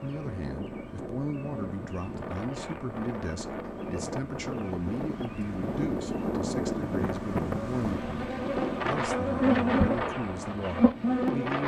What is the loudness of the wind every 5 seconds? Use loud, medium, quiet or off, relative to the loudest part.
medium, loud, loud.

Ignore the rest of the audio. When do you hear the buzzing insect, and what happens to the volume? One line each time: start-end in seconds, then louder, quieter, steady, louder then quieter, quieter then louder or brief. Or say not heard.
0.0-11.6 louder.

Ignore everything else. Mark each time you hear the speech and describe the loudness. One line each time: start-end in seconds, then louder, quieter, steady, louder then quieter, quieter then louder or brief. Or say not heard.
0.0-11.6 steady.